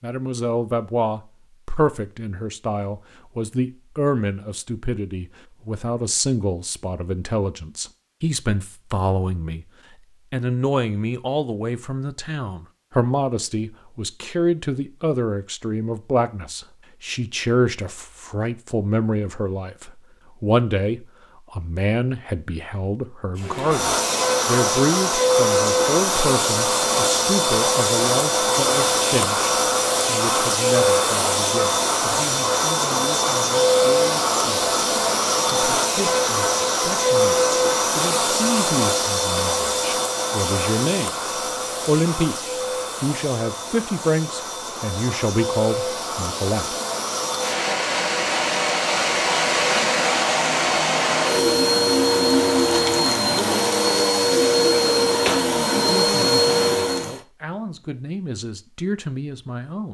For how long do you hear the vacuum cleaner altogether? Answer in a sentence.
You can hear the vacuum cleaner for 34 seconds altogether.